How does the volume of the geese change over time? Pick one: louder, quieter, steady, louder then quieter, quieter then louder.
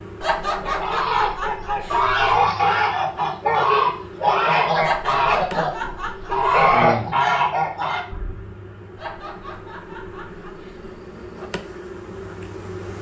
steady.